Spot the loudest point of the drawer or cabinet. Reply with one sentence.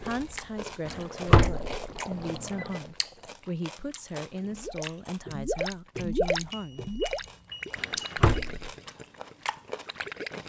The loudest moment of the drawer or cabinet is at 1 second.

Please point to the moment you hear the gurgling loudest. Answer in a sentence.
The volume of the gurgling peaks at 6 seconds.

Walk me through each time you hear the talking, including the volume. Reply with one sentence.
The talking can be heard from 0.0 to 6.8 s, at a steady volume.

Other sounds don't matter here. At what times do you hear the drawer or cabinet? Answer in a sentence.
You can hear the drawer or cabinet from 0.8 to 1.7 s and from 7.8 to 8.7 s.